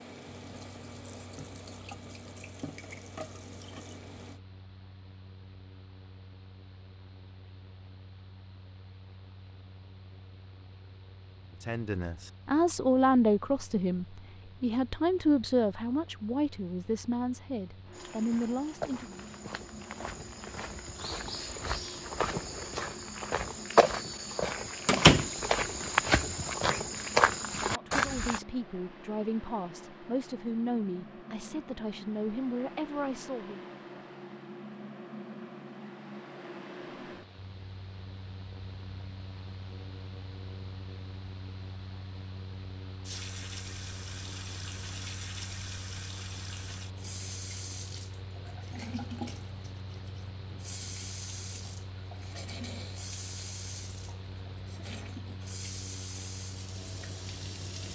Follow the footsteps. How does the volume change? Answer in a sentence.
The volume of the footsteps goes up.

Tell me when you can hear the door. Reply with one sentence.
The door can be heard from 24.9 to 25.3 s.